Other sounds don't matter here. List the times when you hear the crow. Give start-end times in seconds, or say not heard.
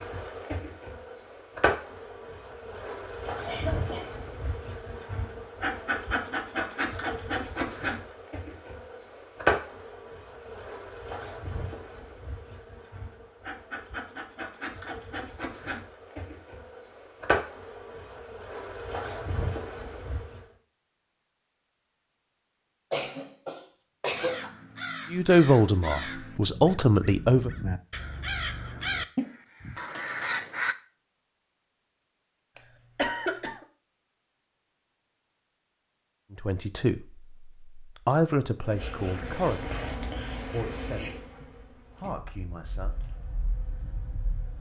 24.1-30.8.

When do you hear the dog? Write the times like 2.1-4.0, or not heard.
not heard.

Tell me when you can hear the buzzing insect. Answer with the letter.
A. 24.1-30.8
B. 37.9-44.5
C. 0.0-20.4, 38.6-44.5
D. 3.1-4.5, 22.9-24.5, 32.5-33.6
C.